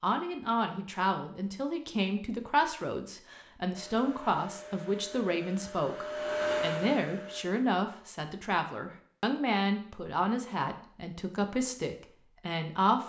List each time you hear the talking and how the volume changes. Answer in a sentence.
You can hear the talking from 0.0 to 13.0 s, at a steady volume.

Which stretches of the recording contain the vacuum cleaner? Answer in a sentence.
The vacuum cleaner can be heard from 3.7 to 7.5 s.